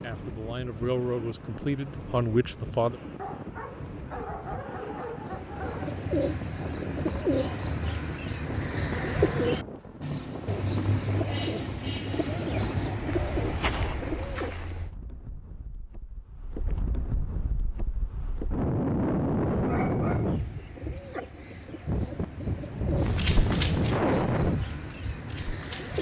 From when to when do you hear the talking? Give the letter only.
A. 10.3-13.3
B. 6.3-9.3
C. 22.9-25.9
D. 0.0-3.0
D.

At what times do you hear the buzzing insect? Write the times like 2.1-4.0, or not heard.
not heard.